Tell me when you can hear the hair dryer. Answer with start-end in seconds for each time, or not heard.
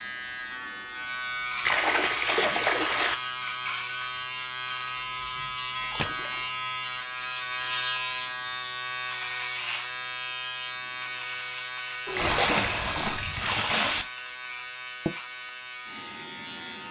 not heard.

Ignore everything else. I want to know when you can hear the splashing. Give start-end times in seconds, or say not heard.
1.6-3.1, 5.8-6.5, 12.1-14.1.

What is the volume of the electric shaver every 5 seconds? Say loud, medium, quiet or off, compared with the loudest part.
loud, loud, loud, medium.